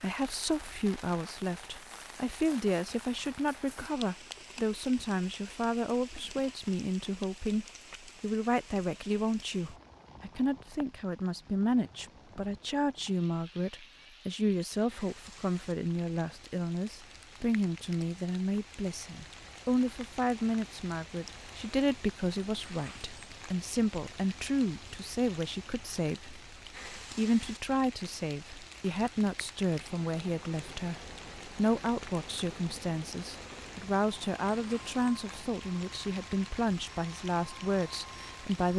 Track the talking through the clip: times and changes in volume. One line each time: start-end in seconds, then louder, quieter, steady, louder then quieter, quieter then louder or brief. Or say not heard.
0.0-38.7 steady.